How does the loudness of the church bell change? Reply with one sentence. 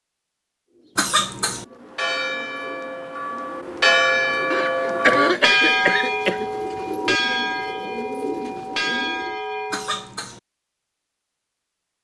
The loudness of the church bell goes up, then down.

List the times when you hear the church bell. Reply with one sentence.
You can hear the church bell from 1.8 to 10.1 s.